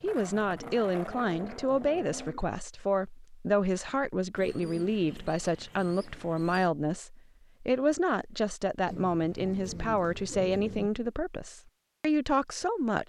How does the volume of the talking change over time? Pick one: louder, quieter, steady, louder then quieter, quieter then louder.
steady.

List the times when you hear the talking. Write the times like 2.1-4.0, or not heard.
0.0-13.0.